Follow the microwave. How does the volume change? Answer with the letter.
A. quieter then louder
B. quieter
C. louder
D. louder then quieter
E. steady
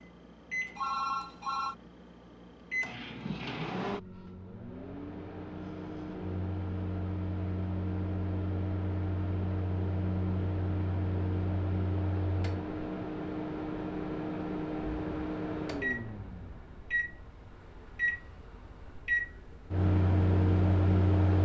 C.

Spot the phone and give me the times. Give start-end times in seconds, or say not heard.
0.8-1.8.